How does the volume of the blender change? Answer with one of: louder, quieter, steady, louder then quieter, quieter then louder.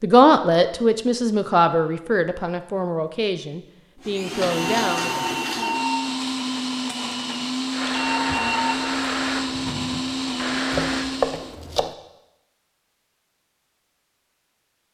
steady.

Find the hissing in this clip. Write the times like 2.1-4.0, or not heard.
7.7-11.1.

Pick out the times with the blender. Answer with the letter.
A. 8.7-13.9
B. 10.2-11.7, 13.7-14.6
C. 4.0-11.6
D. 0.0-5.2
C.